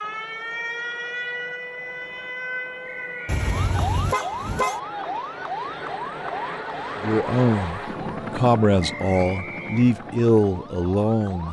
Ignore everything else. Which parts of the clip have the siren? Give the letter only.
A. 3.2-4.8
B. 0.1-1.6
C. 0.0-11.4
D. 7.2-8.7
C.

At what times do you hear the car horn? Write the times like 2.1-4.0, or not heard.
3.2-4.8.